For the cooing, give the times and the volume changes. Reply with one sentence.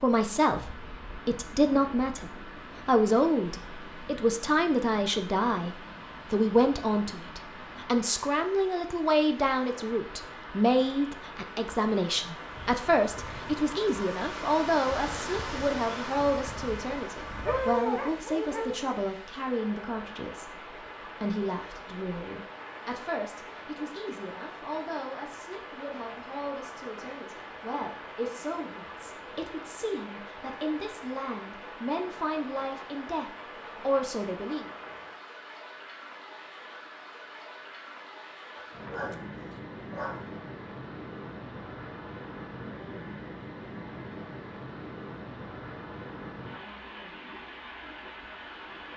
You can't hear the cooing here.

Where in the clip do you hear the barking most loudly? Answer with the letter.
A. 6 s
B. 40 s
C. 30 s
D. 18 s
D.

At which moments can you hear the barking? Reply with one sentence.
The barking can be heard from 17.4 to 19.0 s and from 38.5 to 40.2 s.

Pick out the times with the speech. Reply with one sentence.
You can hear the speech from 0.0 to 34.6 s.